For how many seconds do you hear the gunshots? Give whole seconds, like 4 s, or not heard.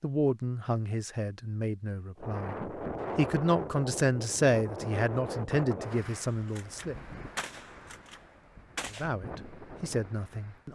3 s.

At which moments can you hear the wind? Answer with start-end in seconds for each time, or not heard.
2.1-10.7.